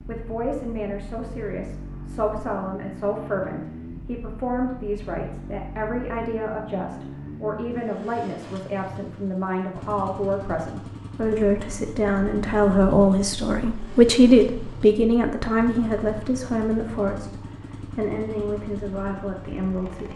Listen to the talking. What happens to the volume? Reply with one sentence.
The volume of the talking goes up, then down.